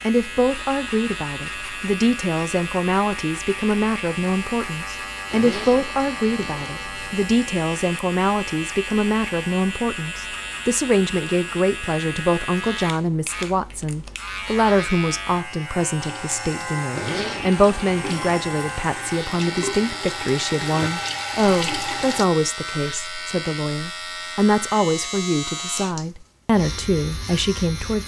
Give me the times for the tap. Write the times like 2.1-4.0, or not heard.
15.9-22.2.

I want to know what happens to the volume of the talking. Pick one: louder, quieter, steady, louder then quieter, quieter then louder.
steady.